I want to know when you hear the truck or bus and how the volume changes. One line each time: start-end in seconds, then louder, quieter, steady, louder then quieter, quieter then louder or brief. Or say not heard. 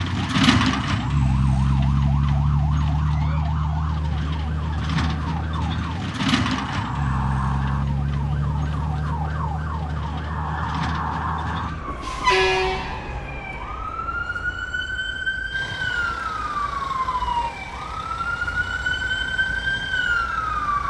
0.0-20.8 quieter.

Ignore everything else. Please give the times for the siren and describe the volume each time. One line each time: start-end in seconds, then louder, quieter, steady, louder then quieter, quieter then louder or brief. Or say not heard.
0.0-20.8 louder.